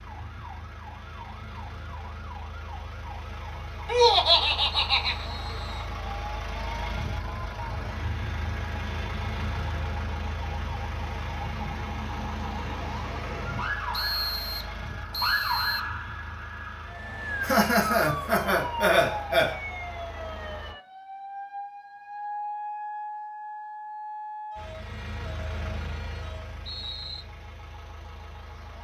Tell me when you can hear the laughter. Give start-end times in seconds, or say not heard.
3.9-5.2, 17.4-19.6.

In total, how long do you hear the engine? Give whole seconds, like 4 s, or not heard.
25 s.